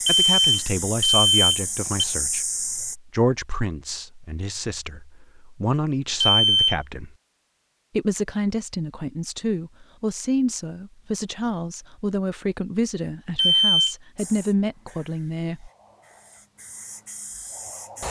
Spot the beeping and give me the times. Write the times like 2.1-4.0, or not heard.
0.1-2.0, 6.2-6.8, 13.3-13.9.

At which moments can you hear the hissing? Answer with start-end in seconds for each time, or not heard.
0.0-3.0, 14.2-18.0.